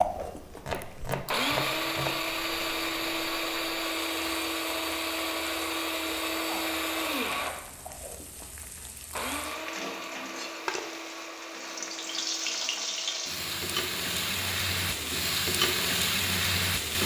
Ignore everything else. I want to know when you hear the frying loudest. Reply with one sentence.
The loudest moment of the frying is at 16 seconds.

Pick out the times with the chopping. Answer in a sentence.
The chopping can be heard from 0.7 to 2.2 s.